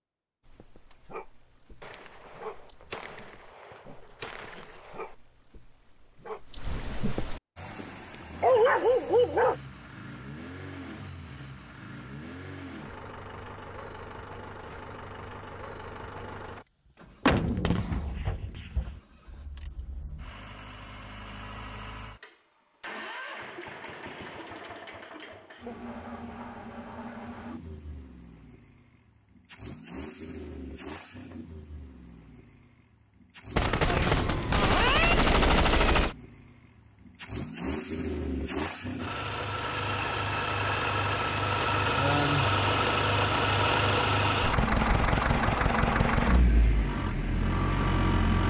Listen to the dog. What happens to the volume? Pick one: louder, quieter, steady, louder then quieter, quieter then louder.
quieter then louder.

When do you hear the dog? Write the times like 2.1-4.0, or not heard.
0.5-9.6.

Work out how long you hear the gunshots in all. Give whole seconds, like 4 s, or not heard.
8 s.